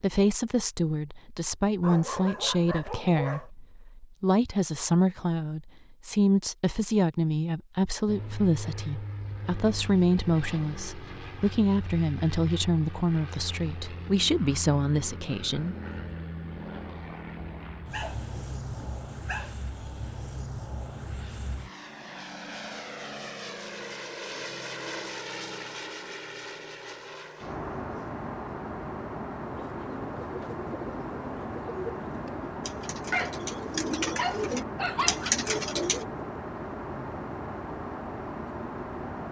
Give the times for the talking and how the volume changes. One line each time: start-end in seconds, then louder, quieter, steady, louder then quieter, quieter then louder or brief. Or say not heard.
0.0-15.8 steady.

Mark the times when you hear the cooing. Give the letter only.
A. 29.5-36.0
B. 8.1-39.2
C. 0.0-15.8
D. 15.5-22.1
A.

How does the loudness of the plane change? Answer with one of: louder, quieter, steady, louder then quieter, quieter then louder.
louder.